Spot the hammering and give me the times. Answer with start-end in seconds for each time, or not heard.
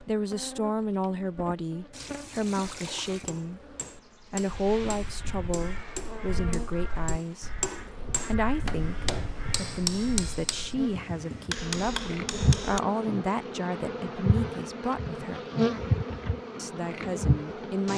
3.2-12.8.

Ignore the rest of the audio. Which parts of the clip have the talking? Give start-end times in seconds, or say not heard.
0.0-7.5, 8.2-15.4, 16.6-17.9.